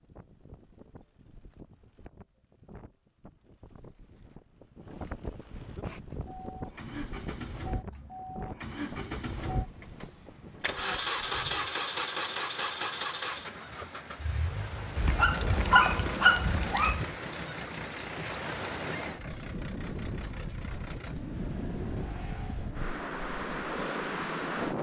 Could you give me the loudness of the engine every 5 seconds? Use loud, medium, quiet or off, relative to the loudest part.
off, medium, loud, medium, medium.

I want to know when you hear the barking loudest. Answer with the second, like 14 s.
16 s.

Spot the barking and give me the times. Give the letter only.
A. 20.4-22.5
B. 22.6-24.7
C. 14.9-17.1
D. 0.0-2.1
C.